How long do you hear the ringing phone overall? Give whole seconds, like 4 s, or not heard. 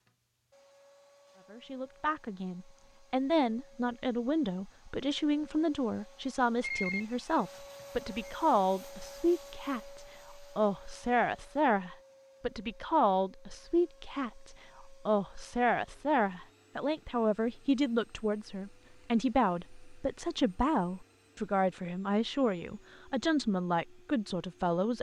2 s.